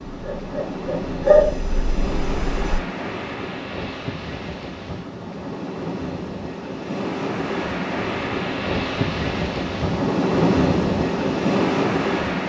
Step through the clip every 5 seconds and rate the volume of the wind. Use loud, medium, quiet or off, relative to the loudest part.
medium, medium, loud.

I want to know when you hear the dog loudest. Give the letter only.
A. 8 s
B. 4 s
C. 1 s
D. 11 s
C.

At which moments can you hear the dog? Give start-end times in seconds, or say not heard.
0.1-2.8.